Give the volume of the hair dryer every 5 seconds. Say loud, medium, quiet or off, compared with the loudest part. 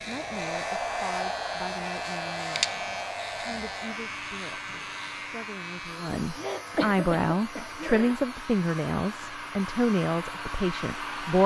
loud, medium, loud.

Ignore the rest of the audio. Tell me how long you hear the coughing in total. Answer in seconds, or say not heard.
2 s.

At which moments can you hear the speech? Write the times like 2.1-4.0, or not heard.
0.1-11.4.